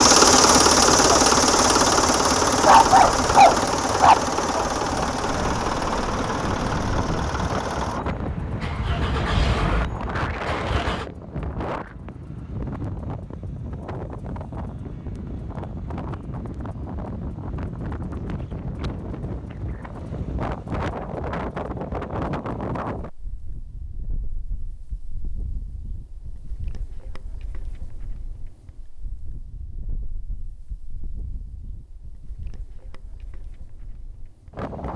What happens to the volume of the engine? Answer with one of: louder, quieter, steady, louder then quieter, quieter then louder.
quieter.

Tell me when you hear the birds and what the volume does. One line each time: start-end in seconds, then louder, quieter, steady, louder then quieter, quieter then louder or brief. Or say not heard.
not heard.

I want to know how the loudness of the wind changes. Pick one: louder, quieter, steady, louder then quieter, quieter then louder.
quieter.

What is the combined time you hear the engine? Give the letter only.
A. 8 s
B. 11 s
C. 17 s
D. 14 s
B.